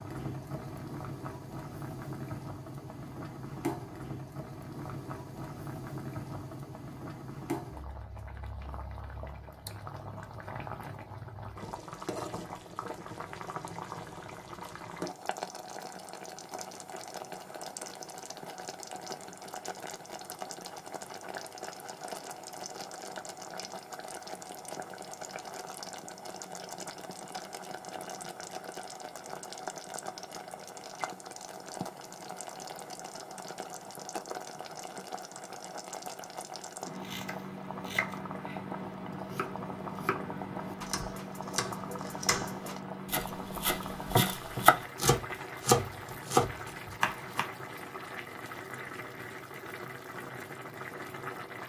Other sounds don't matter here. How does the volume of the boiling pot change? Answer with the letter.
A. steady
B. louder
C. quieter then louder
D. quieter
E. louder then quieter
A.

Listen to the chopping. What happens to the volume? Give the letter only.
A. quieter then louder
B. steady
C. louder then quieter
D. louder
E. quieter
D.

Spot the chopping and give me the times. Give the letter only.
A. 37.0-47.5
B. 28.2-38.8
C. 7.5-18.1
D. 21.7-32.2
A.